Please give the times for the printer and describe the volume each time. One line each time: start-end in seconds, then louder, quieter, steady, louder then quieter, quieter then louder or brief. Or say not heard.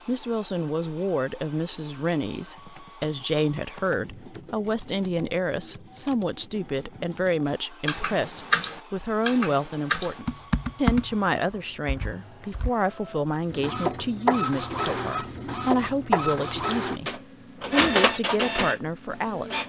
0.0-19.6 louder.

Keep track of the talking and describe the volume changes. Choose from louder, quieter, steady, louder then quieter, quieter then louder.
steady.